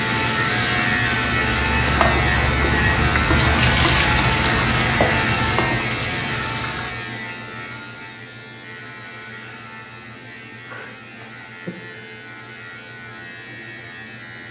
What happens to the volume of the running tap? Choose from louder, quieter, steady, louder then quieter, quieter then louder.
louder then quieter.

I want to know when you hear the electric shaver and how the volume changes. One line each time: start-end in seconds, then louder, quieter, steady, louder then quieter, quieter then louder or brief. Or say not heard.
0.0-14.4 quieter.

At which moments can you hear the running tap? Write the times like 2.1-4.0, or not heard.
0.2-6.9.